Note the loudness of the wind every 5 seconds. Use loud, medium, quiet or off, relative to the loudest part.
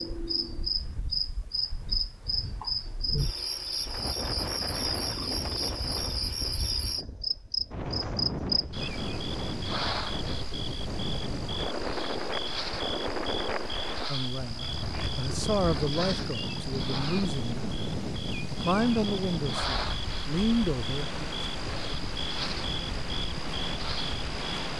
medium, loud, loud, loud, loud.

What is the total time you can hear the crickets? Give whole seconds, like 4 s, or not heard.
25 s.